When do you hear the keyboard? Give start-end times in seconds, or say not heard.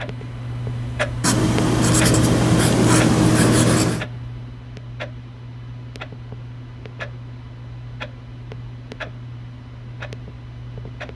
not heard.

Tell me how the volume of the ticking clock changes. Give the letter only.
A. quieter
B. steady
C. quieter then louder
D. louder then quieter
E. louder
A.